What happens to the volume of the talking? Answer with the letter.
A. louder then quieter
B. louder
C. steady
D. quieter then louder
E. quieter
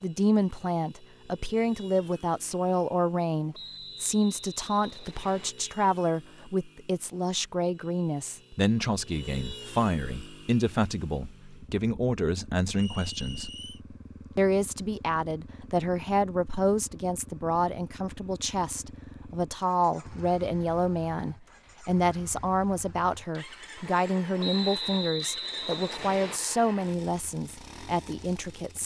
C.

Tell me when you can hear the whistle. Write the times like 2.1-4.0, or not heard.
3.5-5.5, 12.7-13.8, 24.4-26.4.